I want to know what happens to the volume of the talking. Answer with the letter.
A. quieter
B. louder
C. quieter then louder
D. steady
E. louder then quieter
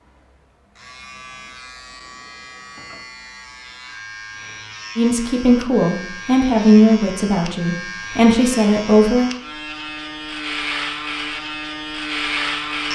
C.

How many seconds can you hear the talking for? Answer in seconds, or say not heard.
4 s.